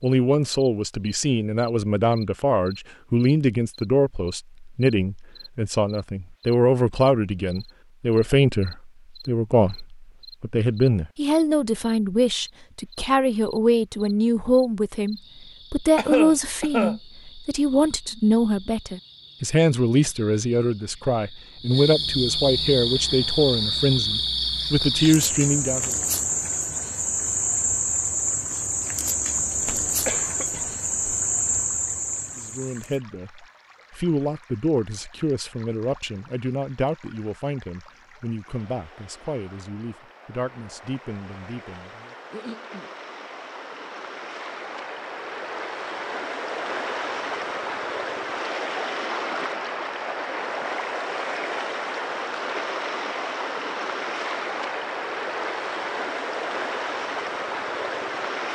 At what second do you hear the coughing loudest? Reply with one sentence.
The loudest moment of the coughing is at 16 seconds.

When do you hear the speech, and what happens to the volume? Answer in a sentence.
The speech can be heard from 0.0 to 25.9 s, at a steady volume; and from 32.4 to 42.1 s, getting quieter.